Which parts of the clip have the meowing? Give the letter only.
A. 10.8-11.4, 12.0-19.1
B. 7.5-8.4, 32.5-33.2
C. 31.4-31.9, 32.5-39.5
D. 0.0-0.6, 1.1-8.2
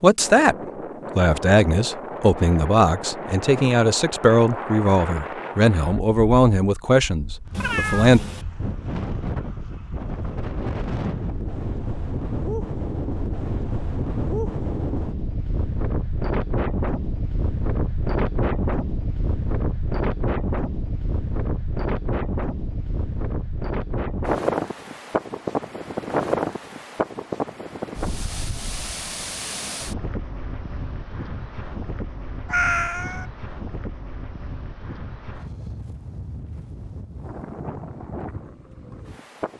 B.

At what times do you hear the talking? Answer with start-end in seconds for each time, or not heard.
0.0-0.6, 1.1-8.2.